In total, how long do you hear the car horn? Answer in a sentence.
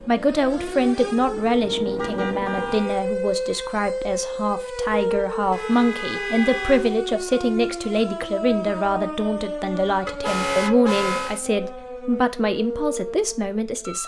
You can hear the car horn for 4 seconds altogether.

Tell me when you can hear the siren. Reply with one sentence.
You can hear the siren from 0.0 to 14.0 s.